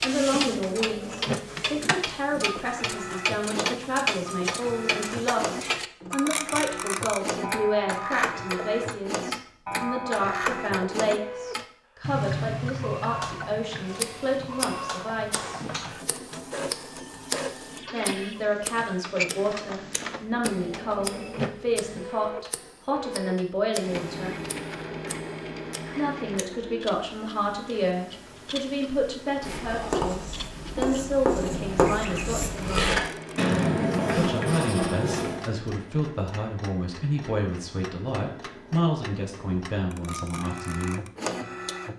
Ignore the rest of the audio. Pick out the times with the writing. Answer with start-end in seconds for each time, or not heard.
29.4-35.5.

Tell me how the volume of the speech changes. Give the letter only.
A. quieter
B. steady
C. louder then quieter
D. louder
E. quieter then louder
B.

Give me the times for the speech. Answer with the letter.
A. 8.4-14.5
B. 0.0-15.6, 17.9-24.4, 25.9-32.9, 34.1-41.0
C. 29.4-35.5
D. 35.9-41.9
B.